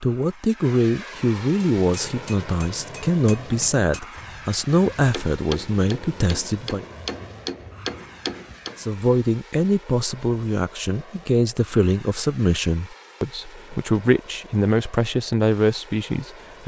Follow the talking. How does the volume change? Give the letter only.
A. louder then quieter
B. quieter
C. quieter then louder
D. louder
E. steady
E.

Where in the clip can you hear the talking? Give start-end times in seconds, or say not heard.
0.0-6.8, 8.8-16.6.